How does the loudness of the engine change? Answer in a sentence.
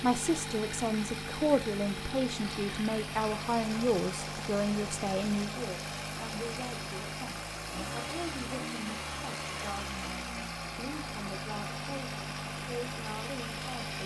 The volume of the engine stays about the same.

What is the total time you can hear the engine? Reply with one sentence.
You can hear the engine for 14 seconds altogether.